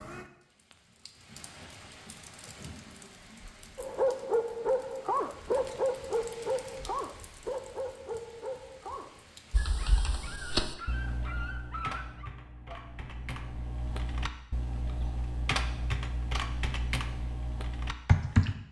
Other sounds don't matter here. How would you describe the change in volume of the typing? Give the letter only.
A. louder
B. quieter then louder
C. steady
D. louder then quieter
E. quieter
B.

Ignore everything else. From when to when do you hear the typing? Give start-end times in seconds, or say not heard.
9.5-18.6.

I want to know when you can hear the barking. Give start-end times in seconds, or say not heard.
3.8-12.8.